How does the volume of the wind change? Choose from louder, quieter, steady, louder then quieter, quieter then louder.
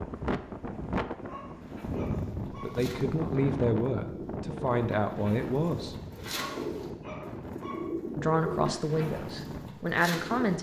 quieter.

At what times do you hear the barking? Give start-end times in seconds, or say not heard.
1.1-2.8, 6.2-7.9.